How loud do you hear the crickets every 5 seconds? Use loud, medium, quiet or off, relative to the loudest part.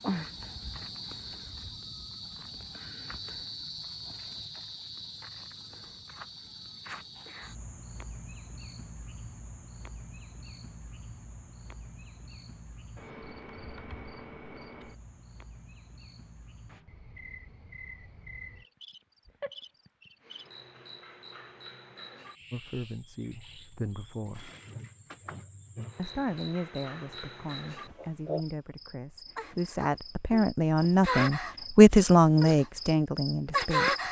medium, quiet, quiet, quiet, quiet, medium, loud.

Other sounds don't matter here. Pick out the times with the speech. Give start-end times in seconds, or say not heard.
22.5-24.5, 25.9-34.0.